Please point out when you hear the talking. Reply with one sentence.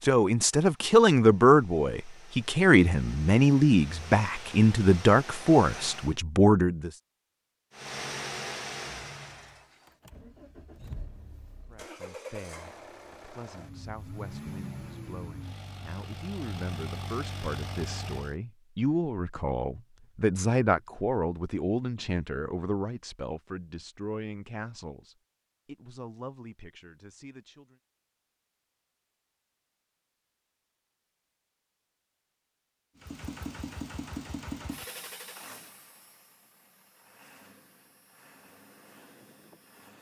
The talking can be heard from 0.0 to 6.9 s and from 11.7 to 27.8 s.